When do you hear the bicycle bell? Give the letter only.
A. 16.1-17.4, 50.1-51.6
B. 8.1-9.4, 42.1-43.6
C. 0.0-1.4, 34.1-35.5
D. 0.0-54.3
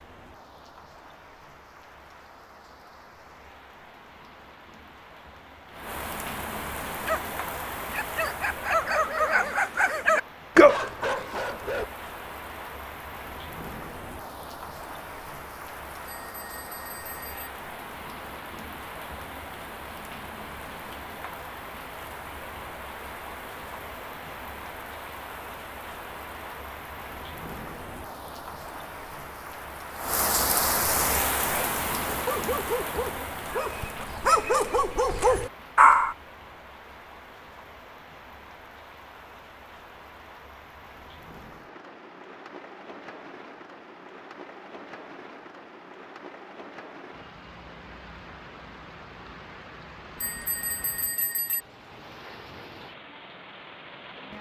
A.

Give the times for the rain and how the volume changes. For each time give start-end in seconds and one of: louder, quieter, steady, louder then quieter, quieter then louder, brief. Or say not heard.
0.0-54.3 louder then quieter.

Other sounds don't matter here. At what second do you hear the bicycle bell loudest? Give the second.
51 s.